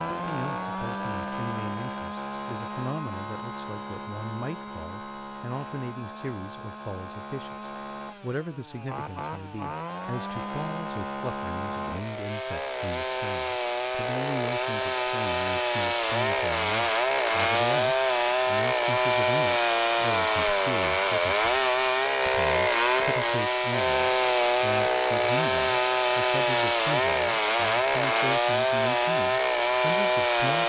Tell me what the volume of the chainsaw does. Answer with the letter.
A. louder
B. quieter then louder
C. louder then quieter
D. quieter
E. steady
A.